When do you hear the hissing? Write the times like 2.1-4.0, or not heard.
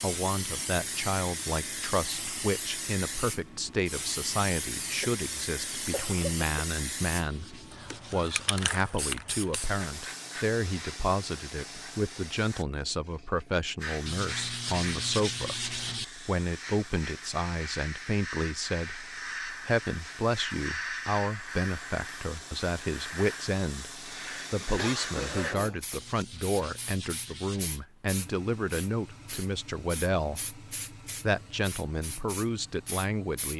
0.0-33.5.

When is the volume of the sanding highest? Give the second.
15 s.